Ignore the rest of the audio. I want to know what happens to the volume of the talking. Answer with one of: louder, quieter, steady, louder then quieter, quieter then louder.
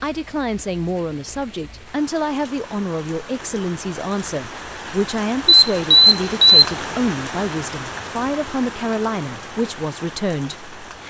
steady.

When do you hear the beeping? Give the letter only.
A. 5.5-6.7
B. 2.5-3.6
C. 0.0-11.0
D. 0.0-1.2
A.